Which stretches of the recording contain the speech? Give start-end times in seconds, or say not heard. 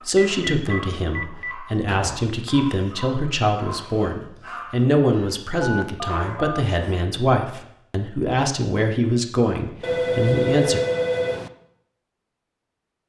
0.1-10.8.